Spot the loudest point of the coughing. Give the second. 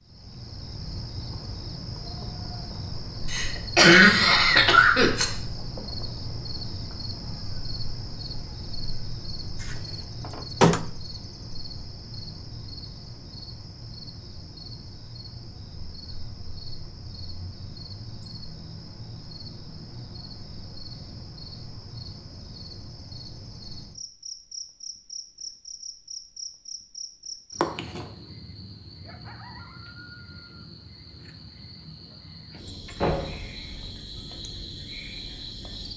4 s.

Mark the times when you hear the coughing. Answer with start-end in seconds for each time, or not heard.
3.3-5.2.